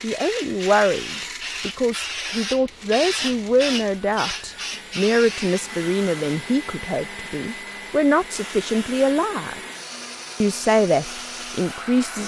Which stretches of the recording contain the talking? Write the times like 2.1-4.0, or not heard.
0.0-9.6, 10.4-12.2.